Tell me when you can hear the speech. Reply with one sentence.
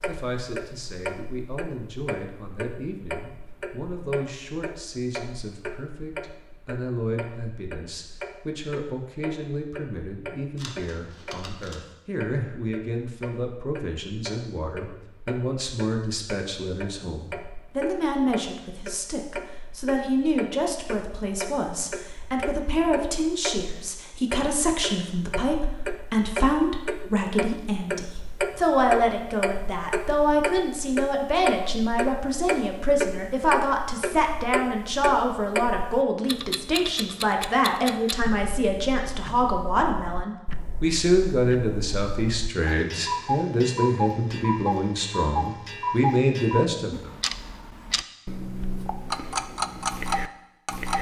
The speech can be heard from 0.1 to 47.1 s.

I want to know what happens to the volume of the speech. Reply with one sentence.
The volume of the speech goes up.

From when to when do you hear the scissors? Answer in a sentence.
You can hear the scissors from 10.6 to 11.8 s.